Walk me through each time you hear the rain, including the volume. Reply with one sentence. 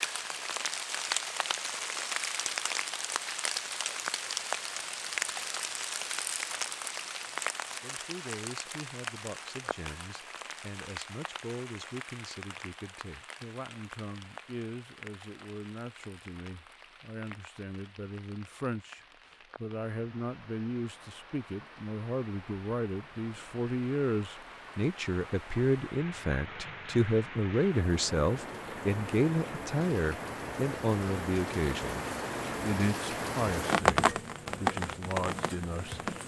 You can hear the rain from 0.0 to 36.2 s, getting quieter then louder.